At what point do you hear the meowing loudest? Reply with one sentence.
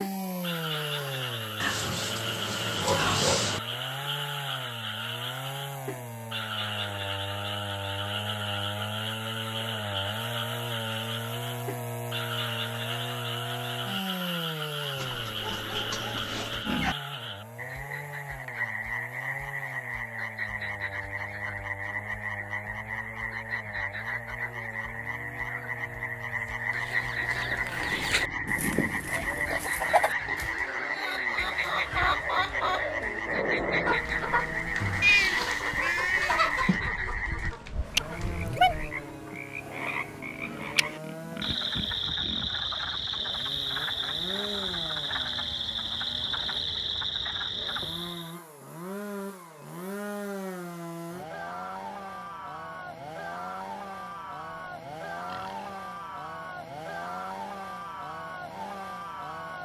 The volume of the meowing peaks at 35 seconds.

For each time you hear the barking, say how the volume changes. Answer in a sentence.
You can't hear the barking here.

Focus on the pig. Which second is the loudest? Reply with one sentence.
The loudest moment of the pig is at 3 seconds.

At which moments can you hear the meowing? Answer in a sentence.
You can hear the meowing from 35.0 to 36.8 s.